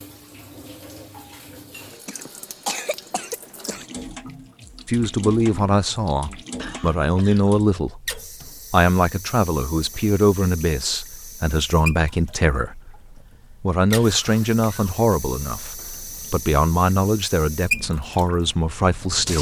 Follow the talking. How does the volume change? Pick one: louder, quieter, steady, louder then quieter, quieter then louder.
steady.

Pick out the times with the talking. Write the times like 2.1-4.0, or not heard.
4.8-12.9, 13.6-19.3.